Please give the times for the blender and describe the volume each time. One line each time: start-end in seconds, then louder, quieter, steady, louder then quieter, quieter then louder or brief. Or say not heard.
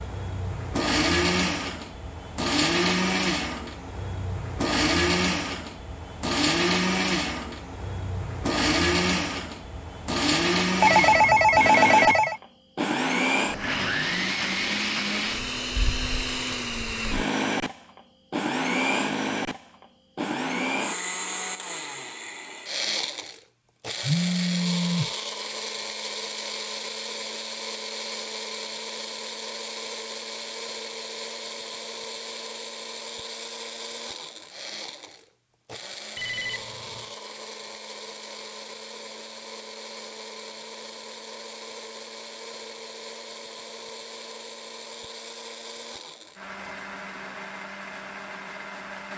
0.0-49.1 quieter.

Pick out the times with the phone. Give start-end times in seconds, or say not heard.
10.8-12.3, 24.0-25.1, 36.1-37.1.